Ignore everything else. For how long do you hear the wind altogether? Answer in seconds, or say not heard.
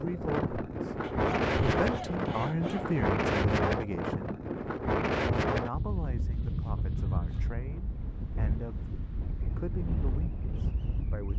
11 s.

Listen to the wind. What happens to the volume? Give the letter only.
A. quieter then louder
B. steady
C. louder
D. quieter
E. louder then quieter
D.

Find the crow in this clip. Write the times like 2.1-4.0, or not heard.
not heard.